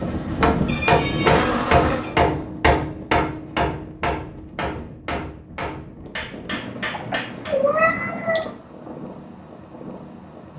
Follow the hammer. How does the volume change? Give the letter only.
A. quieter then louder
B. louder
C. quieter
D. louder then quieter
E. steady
C.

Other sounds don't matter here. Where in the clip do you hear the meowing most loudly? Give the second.
8 s.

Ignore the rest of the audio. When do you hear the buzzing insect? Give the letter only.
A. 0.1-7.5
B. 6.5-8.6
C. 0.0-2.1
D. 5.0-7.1
C.